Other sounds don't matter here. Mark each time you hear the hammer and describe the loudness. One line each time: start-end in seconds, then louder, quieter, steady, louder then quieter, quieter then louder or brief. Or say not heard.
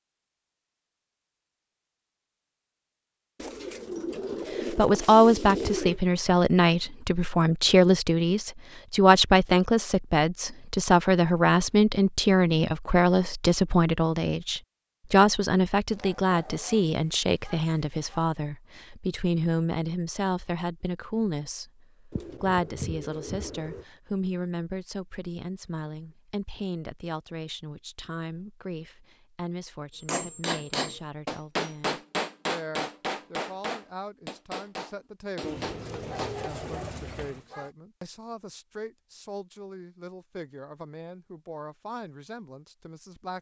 30.1-36.5 quieter.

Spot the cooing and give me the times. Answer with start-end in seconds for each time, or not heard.
3.4-6.0, 22.1-23.9, 35.4-37.5.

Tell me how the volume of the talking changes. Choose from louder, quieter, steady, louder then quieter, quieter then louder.
quieter.